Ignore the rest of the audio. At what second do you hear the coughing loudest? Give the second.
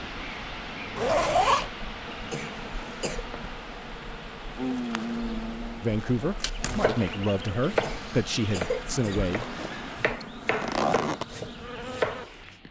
9 s.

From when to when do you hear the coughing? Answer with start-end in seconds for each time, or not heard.
2.3-3.2, 7.8-9.2.